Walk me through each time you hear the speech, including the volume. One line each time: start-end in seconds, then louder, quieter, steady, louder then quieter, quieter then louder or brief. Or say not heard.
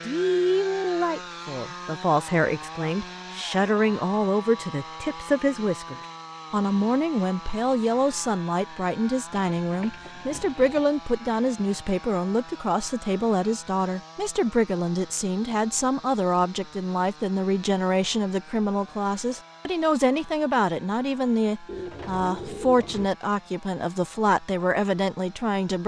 0.0-25.8 steady.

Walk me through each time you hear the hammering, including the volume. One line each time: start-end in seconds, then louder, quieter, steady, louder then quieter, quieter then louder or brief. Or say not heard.
not heard.